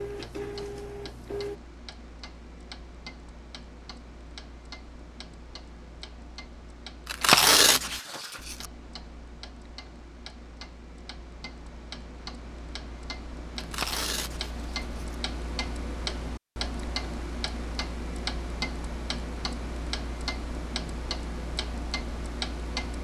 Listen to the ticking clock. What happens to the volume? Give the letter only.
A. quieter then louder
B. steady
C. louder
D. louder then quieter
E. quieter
C.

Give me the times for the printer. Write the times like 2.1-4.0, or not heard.
0.0-1.6.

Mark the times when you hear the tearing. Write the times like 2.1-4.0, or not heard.
7.0-8.7, 13.6-15.2.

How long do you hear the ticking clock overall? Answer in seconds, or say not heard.
23 s.